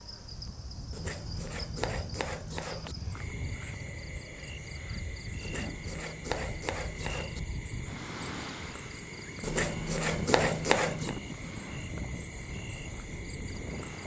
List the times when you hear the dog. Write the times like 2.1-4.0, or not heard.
not heard.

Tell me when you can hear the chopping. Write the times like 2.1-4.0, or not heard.
0.9-3.0, 5.4-7.4, 9.4-11.2.